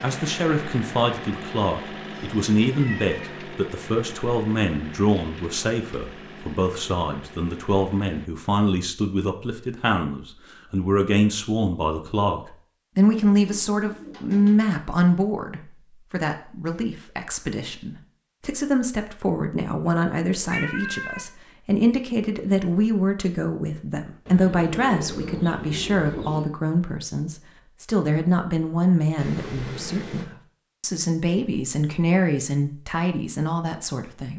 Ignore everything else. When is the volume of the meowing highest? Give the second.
21 s.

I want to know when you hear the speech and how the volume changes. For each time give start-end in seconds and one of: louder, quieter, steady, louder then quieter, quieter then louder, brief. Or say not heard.
0.0-34.3 steady.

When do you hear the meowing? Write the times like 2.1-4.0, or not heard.
2.7-3.1, 20.4-21.2, 29.1-30.3.